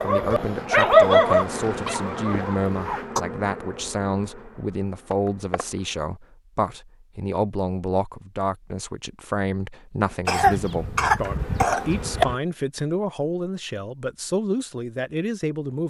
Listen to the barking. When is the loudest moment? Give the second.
1 s.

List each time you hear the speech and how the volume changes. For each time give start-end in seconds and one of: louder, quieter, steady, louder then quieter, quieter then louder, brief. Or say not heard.
0.0-15.8 steady.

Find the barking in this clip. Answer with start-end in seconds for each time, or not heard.
0.0-3.2.